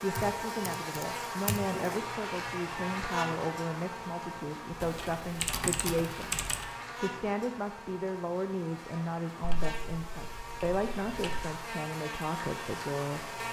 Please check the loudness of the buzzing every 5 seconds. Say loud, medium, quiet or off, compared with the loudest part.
loud, medium, loud.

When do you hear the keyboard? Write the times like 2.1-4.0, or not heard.
0.1-1.6, 4.8-6.7, 9.4-11.4.